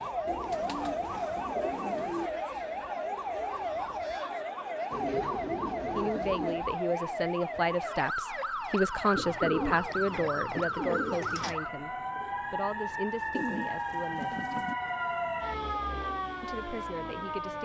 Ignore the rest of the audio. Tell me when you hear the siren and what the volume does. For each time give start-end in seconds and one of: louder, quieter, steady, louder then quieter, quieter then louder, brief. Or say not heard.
0.0-17.6 steady.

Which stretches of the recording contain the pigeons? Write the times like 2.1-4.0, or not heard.
0.2-2.3, 4.9-6.7, 9.2-11.6, 13.3-14.8.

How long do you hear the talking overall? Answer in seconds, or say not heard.
10 s.